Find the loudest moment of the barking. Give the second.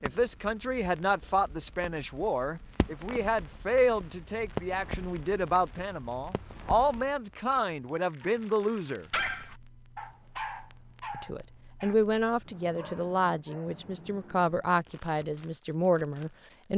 9 s.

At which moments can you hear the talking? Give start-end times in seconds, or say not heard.
0.0-9.1, 11.1-16.7.